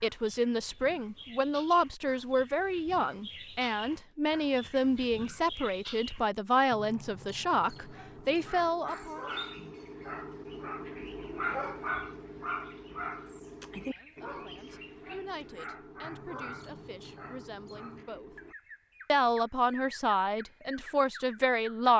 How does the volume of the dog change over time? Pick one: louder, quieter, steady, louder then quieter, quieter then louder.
louder then quieter.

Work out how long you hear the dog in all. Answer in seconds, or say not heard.
11 s.